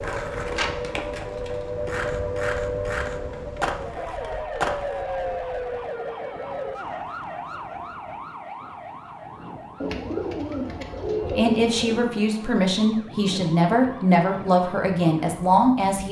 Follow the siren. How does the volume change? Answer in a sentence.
The loudness of the siren goes down.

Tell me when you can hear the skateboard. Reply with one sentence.
You can hear the skateboard from 0.0 to 5.0 s.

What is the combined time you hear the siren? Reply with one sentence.
You can hear the siren for 16 seconds altogether.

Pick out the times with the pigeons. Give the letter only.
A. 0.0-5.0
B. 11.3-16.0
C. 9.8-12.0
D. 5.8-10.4
C.